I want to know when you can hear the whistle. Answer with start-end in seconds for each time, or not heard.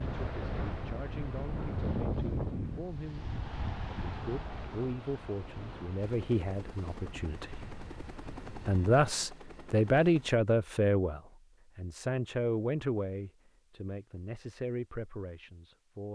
not heard.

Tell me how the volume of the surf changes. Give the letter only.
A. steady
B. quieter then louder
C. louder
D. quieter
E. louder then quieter
D.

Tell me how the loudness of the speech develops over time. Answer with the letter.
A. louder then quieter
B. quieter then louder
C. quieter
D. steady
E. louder
A.